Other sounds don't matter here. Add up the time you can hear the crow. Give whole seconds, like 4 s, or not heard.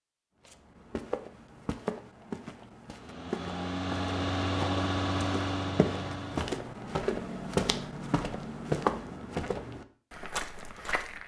not heard.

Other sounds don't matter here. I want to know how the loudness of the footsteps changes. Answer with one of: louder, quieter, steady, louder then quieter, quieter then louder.
louder then quieter.